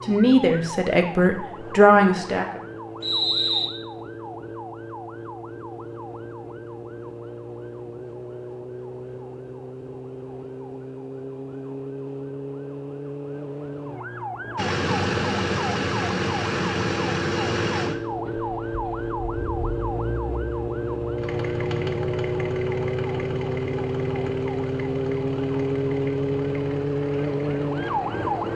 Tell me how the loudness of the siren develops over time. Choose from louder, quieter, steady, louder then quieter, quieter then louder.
louder.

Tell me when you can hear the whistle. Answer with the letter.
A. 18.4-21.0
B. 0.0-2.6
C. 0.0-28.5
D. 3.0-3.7
D.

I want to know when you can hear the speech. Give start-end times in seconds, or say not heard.
0.0-2.6.